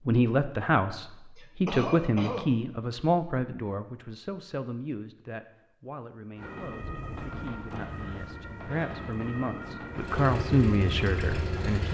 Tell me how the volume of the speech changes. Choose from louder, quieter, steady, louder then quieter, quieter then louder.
quieter then louder.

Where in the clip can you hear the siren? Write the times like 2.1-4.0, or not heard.
6.3-11.8.